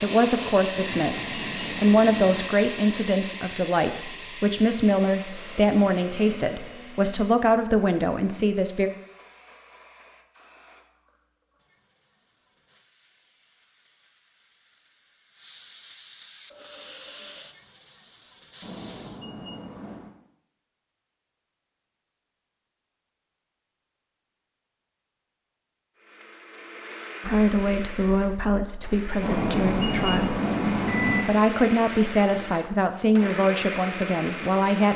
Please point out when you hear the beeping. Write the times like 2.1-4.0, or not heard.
0.7-2.5, 18.6-20.1, 29.2-31.2.